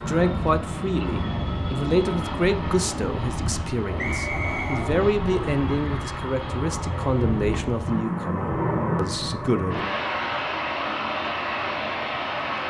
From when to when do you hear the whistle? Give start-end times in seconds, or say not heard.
4.0-4.9.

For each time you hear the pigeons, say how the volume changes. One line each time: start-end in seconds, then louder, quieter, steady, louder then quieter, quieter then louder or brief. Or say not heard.
not heard.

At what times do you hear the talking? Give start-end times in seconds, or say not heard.
0.0-10.0.